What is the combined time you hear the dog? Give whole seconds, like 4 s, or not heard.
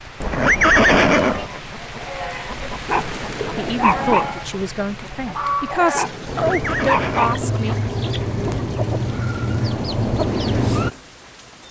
3 s.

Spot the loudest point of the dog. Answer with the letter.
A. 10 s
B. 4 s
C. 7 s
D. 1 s
B.